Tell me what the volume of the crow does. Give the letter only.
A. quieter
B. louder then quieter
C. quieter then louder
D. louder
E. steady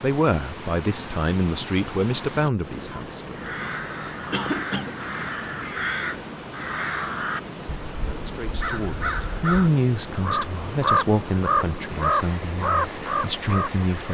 D.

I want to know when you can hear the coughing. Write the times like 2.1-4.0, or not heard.
4.3-5.0.